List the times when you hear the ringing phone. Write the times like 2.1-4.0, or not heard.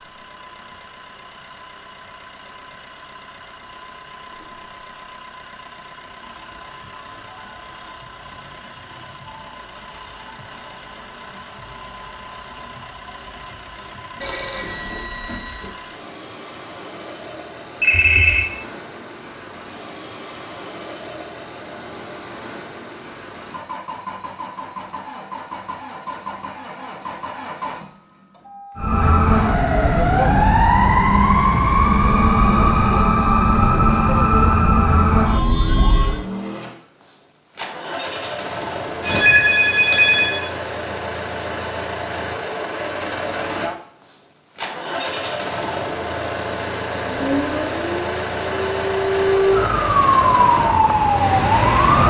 14.2-15.7, 17.8-18.4, 39.0-40.5.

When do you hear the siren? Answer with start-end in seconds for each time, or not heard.
28.8-36.2, 47.1-52.0.